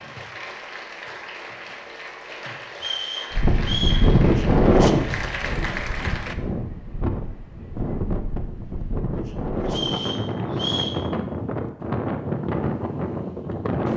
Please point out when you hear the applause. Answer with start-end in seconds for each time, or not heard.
0.0-6.3.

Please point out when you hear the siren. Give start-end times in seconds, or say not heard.
not heard.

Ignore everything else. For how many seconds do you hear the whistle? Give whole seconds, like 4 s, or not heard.
3 s.